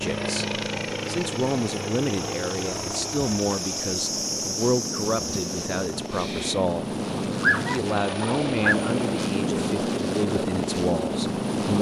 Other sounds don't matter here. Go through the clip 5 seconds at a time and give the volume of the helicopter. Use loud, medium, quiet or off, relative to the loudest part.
medium, loud, loud.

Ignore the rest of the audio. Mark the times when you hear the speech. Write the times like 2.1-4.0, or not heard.
0.0-6.8, 7.7-11.7.